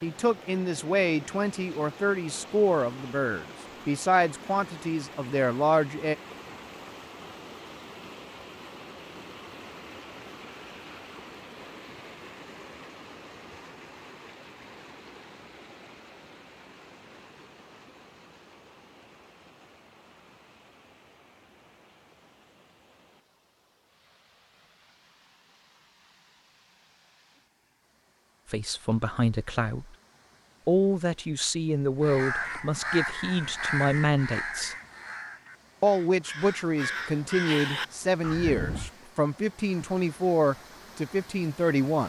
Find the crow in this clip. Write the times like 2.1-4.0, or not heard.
32.0-38.9.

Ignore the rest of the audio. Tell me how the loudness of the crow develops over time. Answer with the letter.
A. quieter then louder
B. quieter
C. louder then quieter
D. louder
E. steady
A.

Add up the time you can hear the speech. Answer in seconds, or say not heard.
18 s.